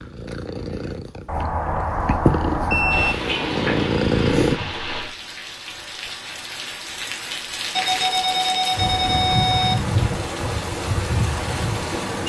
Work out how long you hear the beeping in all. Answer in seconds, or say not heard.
4 s.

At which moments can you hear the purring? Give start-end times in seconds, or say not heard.
0.0-4.6.